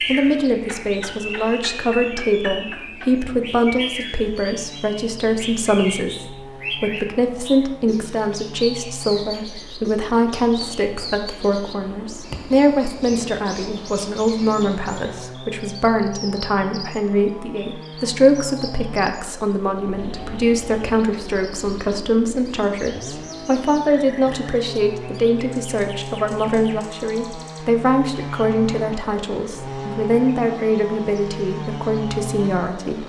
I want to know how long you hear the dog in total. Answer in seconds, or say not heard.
not heard.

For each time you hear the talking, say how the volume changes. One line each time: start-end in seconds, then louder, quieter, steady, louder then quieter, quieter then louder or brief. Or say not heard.
0.1-33.0 steady.